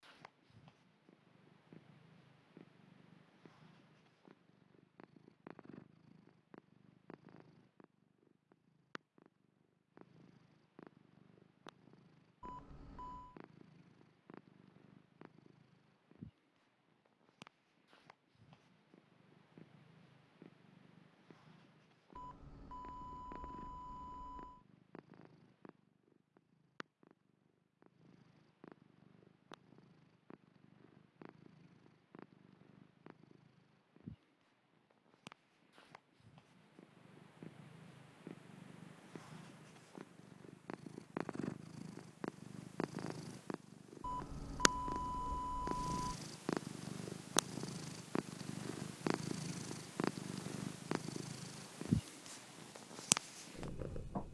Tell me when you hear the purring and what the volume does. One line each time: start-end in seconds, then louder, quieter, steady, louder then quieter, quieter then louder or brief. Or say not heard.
0.0-54.2 louder.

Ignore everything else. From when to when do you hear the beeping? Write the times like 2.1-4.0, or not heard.
12.4-13.4, 22.1-24.6, 44.0-46.1.